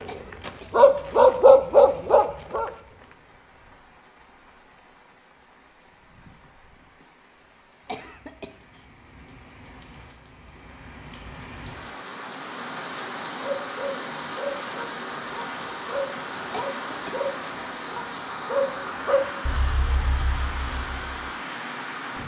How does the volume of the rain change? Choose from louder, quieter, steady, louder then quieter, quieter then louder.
louder.